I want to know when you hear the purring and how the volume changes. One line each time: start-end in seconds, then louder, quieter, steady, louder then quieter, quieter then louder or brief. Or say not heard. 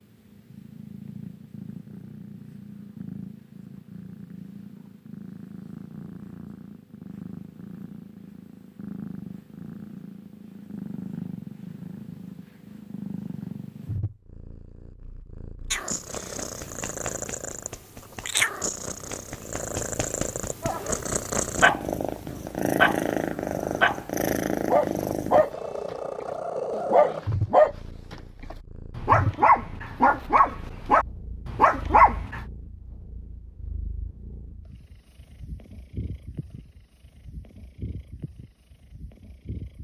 0.0-39.7 louder then quieter.